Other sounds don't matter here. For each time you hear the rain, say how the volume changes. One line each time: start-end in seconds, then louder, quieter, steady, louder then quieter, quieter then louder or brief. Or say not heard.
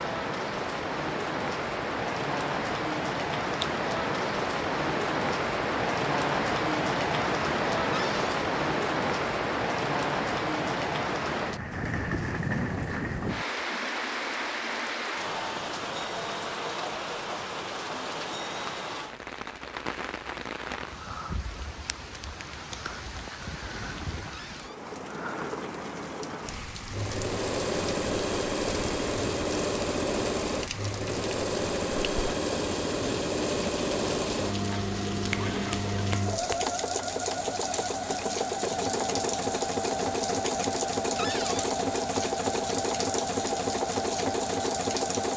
0.0-45.3 quieter.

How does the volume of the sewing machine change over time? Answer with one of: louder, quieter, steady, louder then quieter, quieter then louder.
steady.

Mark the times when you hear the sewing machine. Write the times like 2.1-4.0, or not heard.
26.9-45.3.